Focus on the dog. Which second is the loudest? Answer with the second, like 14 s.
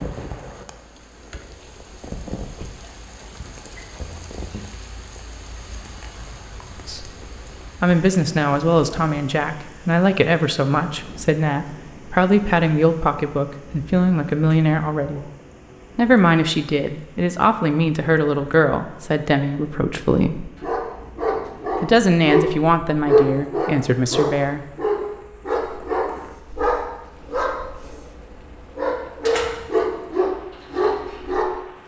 23 s.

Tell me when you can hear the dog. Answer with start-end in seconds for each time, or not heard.
20.6-31.6.